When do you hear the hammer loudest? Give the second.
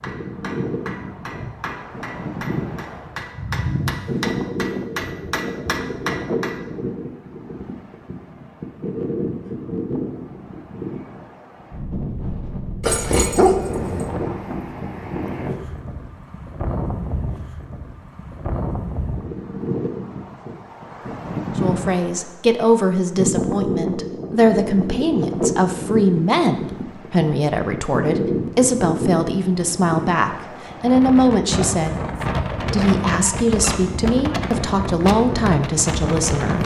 4 s.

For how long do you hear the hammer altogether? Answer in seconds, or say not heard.
7 s.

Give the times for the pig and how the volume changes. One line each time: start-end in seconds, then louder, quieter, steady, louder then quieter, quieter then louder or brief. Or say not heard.
not heard.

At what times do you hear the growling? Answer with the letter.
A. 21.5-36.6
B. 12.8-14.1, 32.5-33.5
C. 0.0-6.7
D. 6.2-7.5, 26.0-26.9
B.